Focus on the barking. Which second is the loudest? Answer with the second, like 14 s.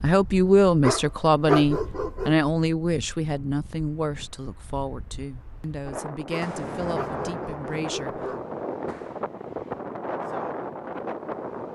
2 s.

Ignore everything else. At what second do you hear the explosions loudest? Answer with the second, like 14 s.
7 s.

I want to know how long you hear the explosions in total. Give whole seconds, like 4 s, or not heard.
3 s.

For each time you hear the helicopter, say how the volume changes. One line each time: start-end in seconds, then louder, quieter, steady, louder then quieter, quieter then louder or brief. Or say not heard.
not heard.